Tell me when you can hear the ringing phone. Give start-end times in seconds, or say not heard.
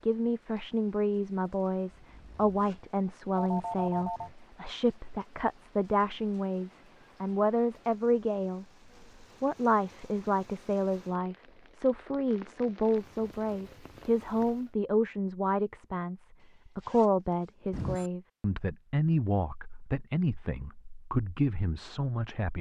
3.4-4.3, 17.7-18.1.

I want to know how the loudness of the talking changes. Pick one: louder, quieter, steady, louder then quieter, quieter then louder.
steady.